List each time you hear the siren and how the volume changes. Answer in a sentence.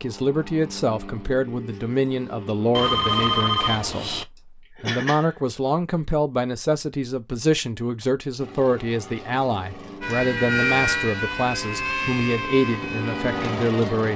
You can hear the siren from 10.0 to 14.1 s, getting quieter.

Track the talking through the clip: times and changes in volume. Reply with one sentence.
The talking can be heard from 0.0 to 14.1 s, at a steady volume.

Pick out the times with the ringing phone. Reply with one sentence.
The ringing phone can be heard from 2.7 to 4.2 s.